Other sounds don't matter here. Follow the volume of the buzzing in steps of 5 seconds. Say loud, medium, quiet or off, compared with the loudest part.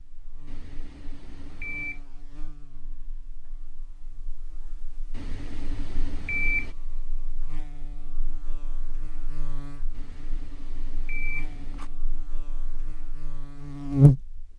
quiet, quiet, loud.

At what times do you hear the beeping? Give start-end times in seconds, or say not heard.
0.5-2.0, 5.1-6.8, 9.9-11.9.